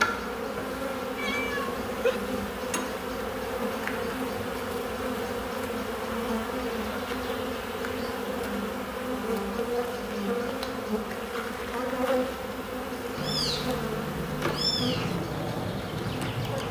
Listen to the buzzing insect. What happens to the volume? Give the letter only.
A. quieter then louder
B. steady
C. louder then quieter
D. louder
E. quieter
B.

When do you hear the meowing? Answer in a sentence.
You can hear the meowing from 1.1 to 2.2 s and from 13.2 to 15.2 s.